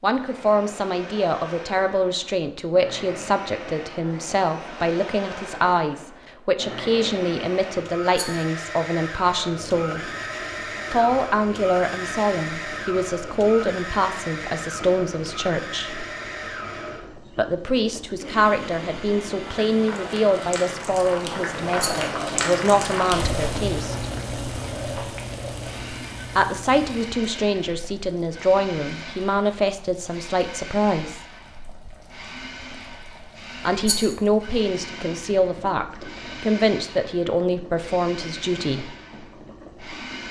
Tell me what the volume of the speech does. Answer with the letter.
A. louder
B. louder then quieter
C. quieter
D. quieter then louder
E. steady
E.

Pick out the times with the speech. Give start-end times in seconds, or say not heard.
0.0-10.1, 10.9-16.1, 17.4-24.1, 26.4-31.2, 33.6-39.0.